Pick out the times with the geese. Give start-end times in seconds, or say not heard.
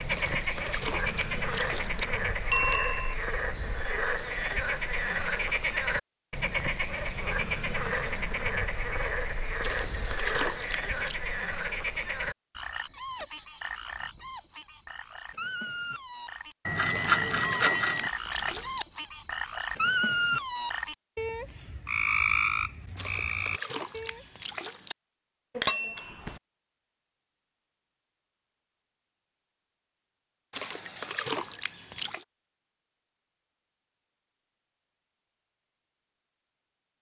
not heard.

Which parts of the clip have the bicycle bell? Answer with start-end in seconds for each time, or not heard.
2.5-3.1, 16.6-18.1, 25.6-26.4.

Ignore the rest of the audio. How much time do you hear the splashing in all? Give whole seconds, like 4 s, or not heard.
9 s.